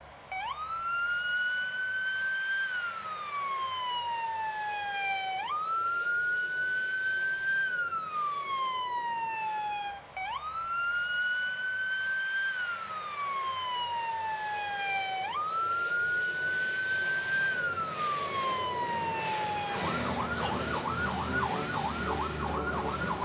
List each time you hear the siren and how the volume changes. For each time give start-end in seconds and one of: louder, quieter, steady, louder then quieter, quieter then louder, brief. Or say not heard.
0.1-23.2 steady.